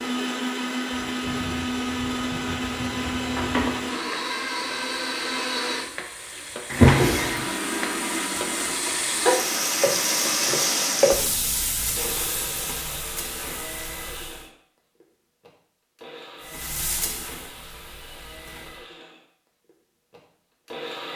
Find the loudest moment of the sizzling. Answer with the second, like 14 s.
11 s.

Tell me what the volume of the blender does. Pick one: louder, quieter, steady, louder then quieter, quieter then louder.
quieter.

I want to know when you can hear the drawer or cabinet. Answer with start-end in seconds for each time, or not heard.
6.7-7.5.